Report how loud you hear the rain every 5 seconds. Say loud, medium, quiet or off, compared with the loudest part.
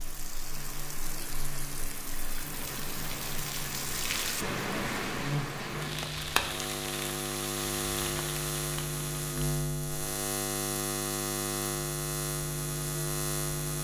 loud, loud, off.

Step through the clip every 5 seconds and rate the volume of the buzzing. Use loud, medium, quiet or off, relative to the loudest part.
quiet, loud, loud.